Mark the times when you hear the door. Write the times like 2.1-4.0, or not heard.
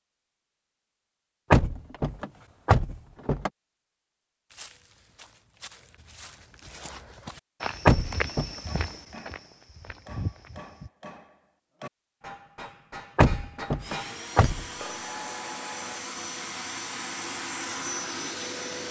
1.5-3.5, 7.8-8.5, 13.2-14.7.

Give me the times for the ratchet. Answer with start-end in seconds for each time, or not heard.
not heard.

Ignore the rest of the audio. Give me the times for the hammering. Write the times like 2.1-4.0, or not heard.
8.7-16.0.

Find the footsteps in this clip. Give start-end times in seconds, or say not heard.
4.5-10.9.